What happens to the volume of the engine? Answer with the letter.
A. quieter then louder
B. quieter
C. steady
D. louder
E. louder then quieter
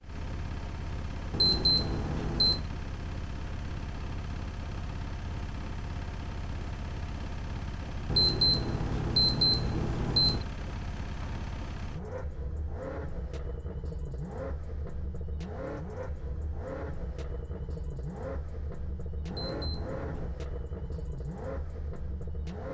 C.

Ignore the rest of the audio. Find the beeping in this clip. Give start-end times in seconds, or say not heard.
1.3-2.6, 8.1-10.4, 19.3-20.3.